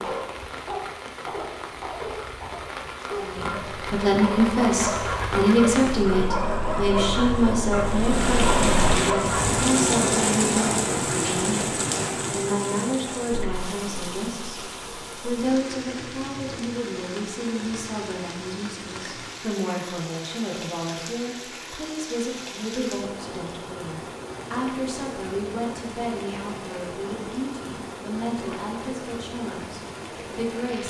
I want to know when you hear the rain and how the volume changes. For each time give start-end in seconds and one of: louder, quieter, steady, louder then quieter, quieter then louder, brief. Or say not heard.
0.0-30.8 louder then quieter.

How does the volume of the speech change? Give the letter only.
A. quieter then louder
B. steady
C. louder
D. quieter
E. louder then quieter
D.